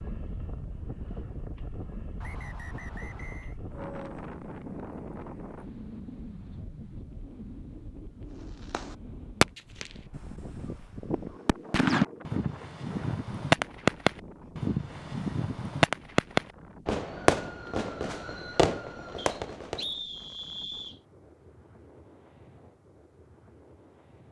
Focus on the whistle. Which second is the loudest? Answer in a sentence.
The loudest moment of the whistle is at 20 seconds.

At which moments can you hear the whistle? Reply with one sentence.
You can hear the whistle from 2.2 to 3.5 s and from 19.1 to 21.0 s.